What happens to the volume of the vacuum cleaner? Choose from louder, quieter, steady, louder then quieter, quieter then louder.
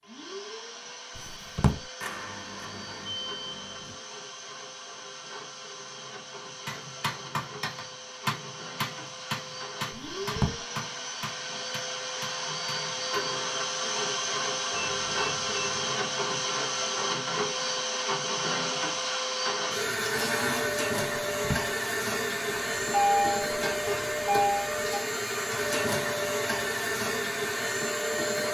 louder.